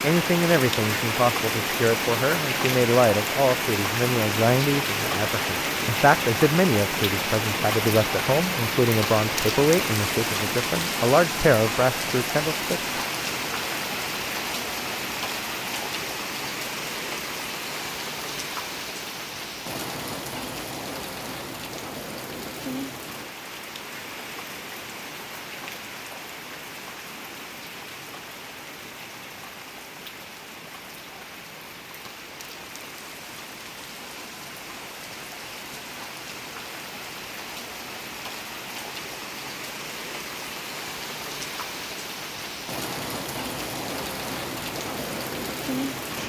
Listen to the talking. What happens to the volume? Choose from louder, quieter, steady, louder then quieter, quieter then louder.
steady.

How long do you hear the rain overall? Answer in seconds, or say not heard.
46 s.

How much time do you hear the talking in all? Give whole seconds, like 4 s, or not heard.
13 s.